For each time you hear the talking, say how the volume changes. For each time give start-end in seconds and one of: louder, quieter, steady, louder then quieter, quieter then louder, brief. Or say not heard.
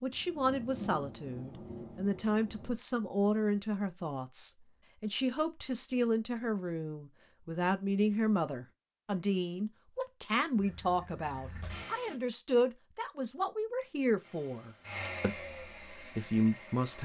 0.0-16.9 steady.